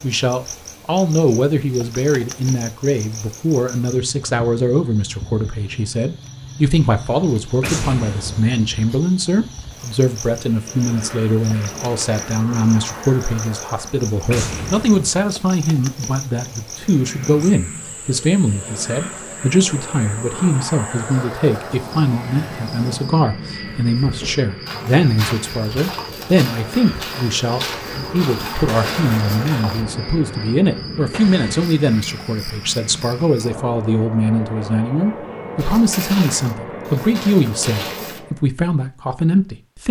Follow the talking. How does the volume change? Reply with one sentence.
The volume of the talking stays about the same.